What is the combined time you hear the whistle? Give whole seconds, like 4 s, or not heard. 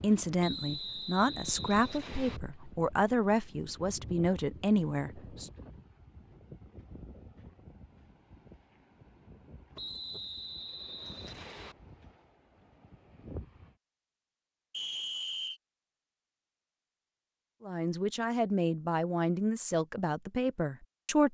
5 s.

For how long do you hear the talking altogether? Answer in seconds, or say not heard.
9 s.